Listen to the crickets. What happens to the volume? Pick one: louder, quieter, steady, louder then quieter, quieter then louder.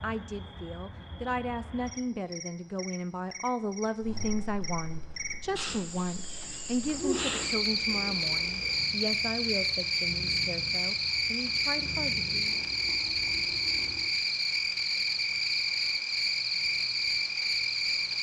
louder.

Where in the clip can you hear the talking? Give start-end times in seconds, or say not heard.
0.0-12.7.